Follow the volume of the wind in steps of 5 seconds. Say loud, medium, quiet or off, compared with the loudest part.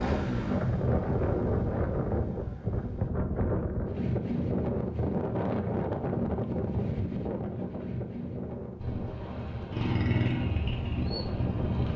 loud, loud, medium.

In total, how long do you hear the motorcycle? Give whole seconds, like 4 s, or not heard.
6 s.